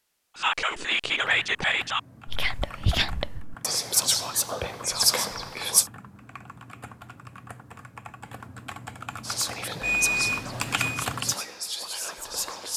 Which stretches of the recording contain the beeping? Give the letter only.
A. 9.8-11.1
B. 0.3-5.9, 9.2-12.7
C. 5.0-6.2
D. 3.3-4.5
A.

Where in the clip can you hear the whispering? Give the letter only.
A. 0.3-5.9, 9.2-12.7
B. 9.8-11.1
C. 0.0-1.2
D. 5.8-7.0
A.